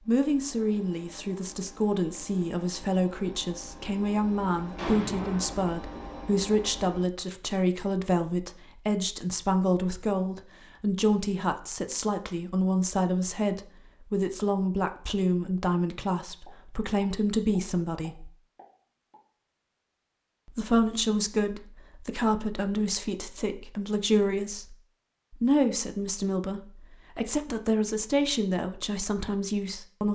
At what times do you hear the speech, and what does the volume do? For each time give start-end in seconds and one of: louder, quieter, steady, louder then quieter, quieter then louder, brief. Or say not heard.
0.1-18.3 steady
20.4-30.1 steady.